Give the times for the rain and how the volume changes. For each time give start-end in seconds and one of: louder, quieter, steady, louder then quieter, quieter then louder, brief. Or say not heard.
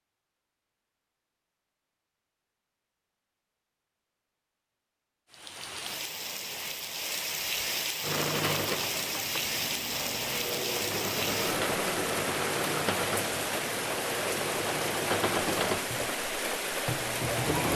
5.3-17.7 steady.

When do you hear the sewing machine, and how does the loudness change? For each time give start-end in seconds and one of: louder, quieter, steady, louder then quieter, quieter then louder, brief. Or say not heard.
8.0-17.7 steady.